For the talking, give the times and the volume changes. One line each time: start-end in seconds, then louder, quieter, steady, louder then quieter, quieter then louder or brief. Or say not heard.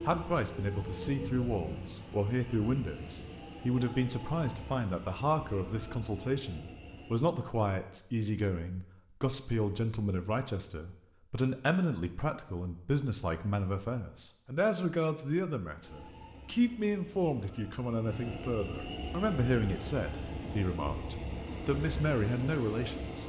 0.1-23.2 steady.